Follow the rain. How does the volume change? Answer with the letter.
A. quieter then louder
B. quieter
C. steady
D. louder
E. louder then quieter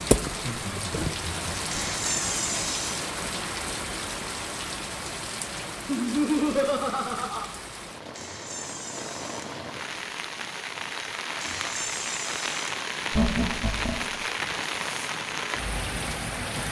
A.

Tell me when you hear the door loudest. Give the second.
2 s.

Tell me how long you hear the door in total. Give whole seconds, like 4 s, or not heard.
4 s.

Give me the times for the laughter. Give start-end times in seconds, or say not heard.
0.3-1.8, 5.8-7.5, 13.1-14.2.